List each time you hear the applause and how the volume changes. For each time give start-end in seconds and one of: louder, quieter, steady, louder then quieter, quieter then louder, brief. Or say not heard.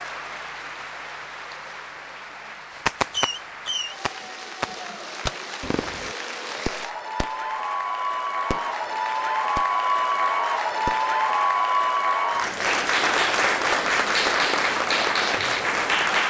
0.0-16.2 louder.